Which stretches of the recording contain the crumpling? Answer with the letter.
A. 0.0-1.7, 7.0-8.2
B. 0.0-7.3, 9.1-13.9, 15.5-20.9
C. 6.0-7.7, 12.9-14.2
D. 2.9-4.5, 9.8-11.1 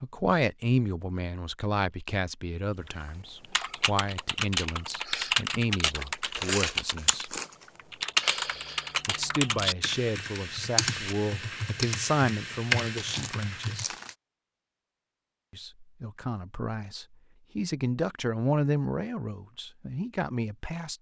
C.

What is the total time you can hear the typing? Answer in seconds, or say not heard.
11 s.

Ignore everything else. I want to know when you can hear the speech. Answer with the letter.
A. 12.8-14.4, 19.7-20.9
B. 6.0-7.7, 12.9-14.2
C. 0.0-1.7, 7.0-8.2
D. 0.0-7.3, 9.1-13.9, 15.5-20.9
D.